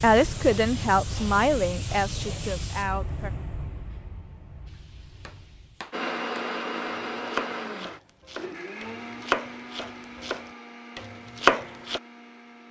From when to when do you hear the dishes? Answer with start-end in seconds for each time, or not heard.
not heard.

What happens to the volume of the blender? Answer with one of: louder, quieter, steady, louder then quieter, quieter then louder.
quieter.